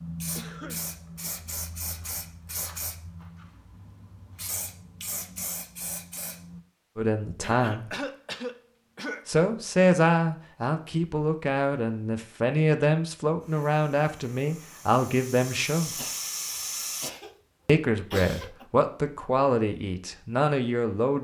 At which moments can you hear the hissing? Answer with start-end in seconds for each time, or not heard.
0.0-6.6, 13.2-17.1.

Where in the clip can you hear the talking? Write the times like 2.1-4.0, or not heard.
7.0-8.0, 9.2-16.0, 17.6-21.1.